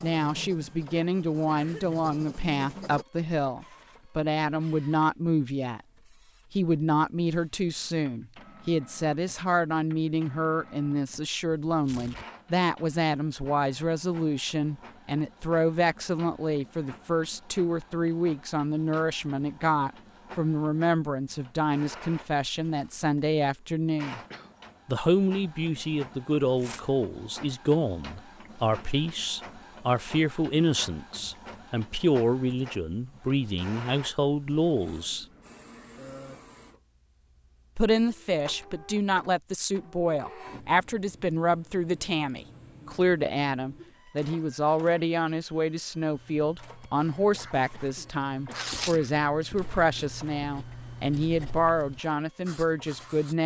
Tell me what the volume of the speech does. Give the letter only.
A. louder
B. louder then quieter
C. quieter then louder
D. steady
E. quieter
D.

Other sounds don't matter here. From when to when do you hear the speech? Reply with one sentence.
You can hear the speech from 0.0 to 5.8 s, from 6.5 to 24.2 s, from 24.9 to 35.2 s and from 37.8 to 53.4 s.